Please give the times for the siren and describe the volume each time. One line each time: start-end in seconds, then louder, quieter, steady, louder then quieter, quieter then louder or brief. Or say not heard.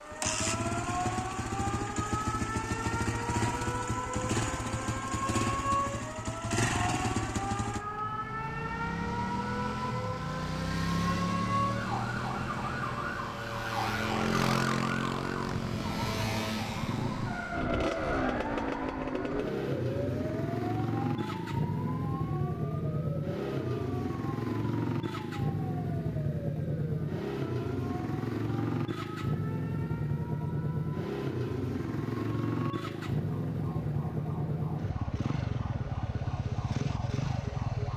0.0-37.9 quieter.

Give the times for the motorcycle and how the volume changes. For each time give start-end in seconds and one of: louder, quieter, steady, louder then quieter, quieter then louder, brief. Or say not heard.
0.0-37.9 steady.